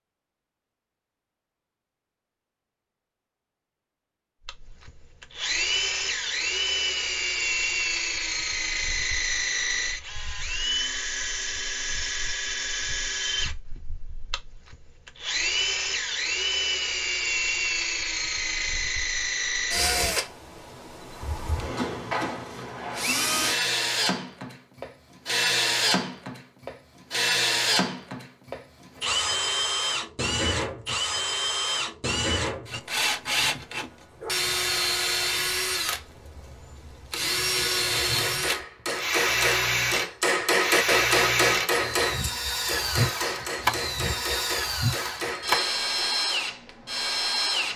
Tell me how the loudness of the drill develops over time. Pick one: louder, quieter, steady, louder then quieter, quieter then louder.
steady.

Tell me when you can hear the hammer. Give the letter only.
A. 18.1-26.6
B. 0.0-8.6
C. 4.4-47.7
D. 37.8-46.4
D.